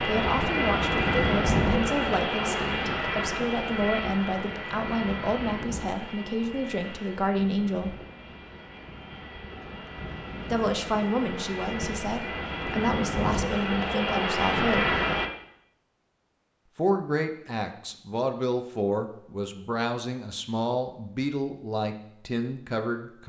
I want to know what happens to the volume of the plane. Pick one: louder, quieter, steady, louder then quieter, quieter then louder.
quieter then louder.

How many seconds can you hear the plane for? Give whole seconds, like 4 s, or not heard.
15 s.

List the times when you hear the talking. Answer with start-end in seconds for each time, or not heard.
0.0-8.0, 10.4-14.9, 16.8-23.2.